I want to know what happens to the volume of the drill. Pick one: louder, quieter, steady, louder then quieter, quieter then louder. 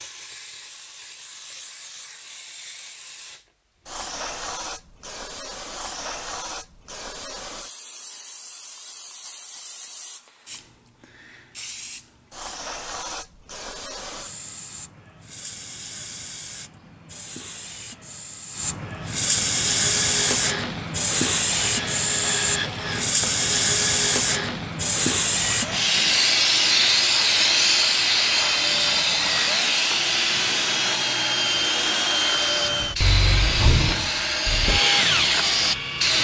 louder.